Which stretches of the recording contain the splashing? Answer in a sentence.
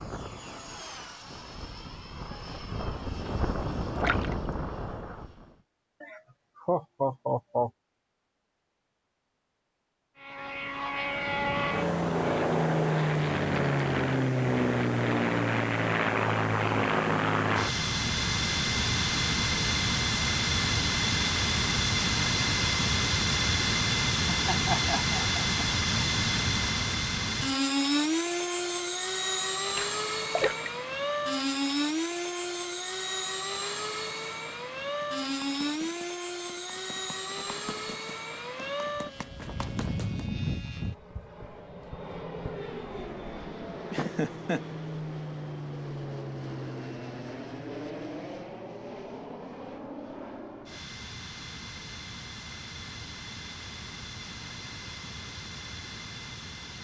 You can hear the splashing from 4.0 to 4.5 s and from 29.8 to 30.7 s.